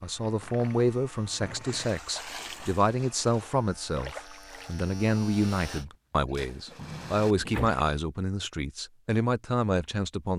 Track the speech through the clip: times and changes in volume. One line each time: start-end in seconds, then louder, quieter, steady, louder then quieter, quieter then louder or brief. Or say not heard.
0.0-10.3 steady.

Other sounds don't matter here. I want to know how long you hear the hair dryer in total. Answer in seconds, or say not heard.
not heard.